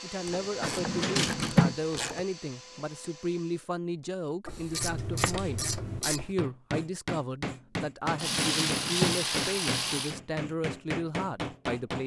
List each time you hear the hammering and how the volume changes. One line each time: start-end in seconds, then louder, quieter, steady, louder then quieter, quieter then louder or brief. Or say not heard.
4.8-12.0 steady.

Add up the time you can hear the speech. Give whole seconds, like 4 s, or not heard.
12 s.